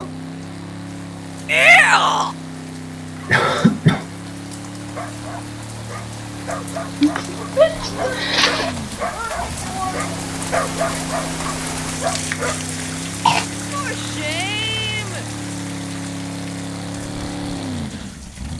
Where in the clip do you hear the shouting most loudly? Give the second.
2 s.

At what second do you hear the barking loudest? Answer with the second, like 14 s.
11 s.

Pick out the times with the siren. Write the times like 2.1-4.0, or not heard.
not heard.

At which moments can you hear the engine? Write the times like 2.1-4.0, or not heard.
0.0-18.5.